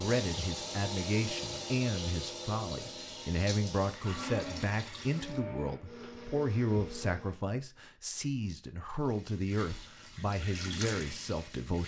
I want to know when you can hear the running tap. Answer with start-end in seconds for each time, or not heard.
0.0-5.4, 8.9-11.8.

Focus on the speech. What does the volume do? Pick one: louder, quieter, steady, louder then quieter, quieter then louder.
steady.